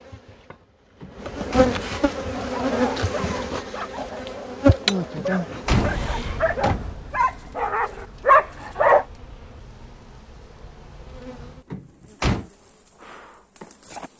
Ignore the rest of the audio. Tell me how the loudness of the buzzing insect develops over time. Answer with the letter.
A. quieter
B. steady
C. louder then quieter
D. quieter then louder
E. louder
A.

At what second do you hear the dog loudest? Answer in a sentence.
The loudest moment of the dog is at 8 seconds.